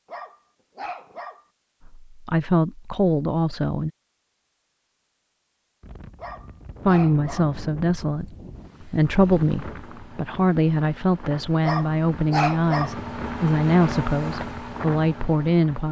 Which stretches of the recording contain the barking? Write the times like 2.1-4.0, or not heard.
0.1-1.4, 6.2-7.5, 11.6-12.9.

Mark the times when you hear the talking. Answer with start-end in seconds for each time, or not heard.
1.9-3.9, 6.8-15.8.